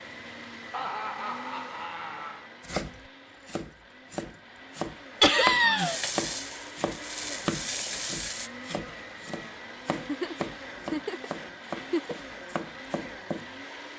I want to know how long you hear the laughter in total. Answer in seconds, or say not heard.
5 s.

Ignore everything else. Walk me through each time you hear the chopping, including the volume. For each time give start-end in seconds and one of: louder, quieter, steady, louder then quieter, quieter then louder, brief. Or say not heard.
2.6-13.4 louder then quieter.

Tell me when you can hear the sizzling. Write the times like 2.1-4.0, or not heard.
5.8-8.5.